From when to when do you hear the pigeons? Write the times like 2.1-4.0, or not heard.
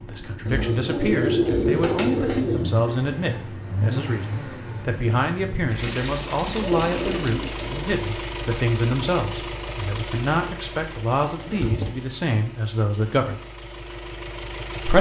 0.5-2.7, 5.8-7.9, 10.9-11.9.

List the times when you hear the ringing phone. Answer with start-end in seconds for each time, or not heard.
not heard.